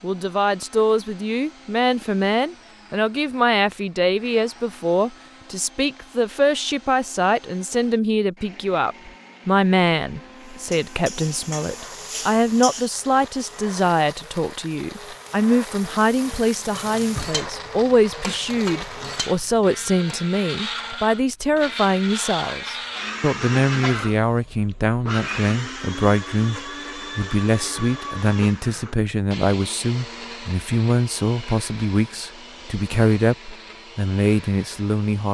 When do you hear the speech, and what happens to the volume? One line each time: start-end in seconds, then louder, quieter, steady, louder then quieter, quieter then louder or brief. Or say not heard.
0.0-35.3 steady.